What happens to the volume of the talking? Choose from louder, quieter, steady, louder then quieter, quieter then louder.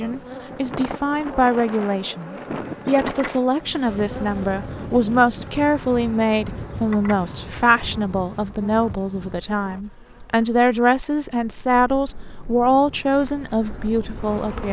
steady.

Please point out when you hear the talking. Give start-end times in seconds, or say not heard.
0.0-14.6.